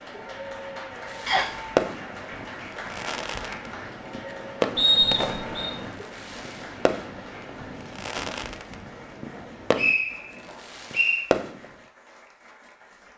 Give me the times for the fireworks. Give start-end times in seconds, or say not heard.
1.1-11.7.